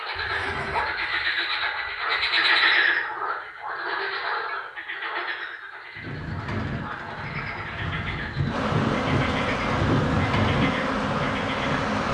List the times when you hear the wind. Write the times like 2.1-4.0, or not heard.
6.0-12.0.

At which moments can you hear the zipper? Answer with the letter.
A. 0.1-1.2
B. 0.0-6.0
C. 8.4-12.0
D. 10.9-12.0
A.